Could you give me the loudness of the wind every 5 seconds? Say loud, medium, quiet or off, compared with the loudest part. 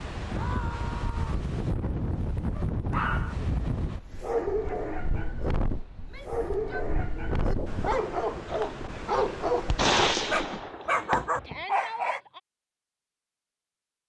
loud, loud, off.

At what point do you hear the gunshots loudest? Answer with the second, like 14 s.
10 s.